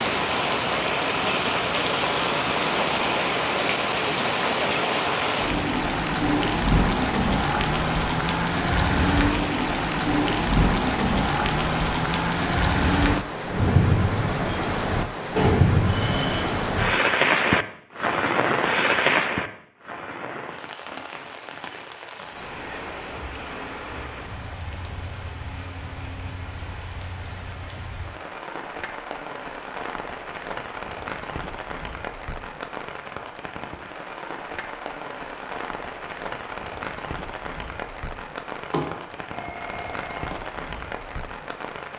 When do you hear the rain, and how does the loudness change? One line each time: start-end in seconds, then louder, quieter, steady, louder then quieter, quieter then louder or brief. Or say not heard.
0.0-41.9 quieter.